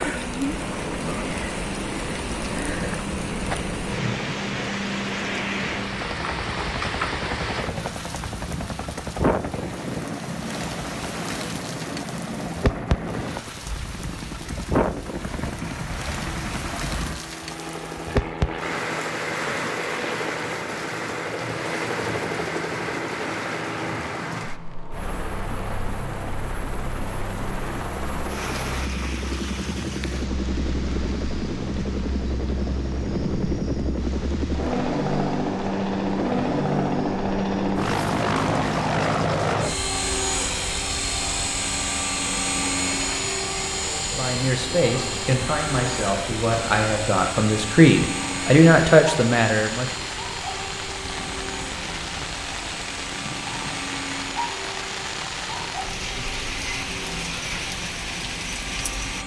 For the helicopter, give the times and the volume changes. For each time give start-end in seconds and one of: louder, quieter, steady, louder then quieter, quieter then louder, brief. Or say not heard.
0.1-59.2 louder then quieter.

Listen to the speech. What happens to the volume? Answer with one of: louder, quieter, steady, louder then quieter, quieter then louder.
louder.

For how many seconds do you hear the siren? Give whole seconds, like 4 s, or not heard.
not heard.